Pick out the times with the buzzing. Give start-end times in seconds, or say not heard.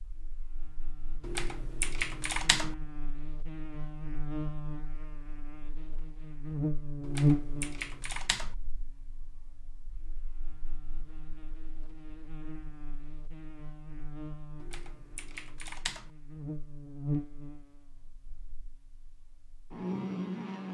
0.0-20.6.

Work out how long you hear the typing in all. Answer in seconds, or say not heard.
5 s.